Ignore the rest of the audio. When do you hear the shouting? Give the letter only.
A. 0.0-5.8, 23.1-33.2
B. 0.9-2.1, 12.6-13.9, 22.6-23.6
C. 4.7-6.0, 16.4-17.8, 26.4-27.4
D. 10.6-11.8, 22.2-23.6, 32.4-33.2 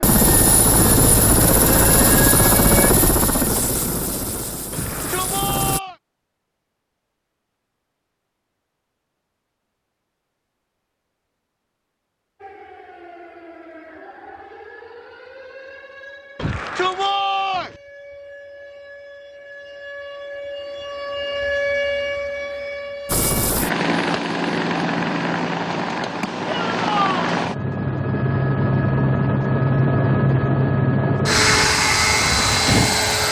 C.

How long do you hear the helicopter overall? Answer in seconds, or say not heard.
16 s.